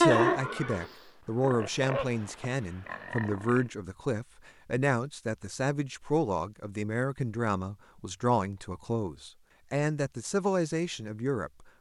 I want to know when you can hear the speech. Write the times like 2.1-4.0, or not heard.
0.0-11.7.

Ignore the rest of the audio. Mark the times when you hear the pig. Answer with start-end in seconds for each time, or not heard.
0.0-3.7.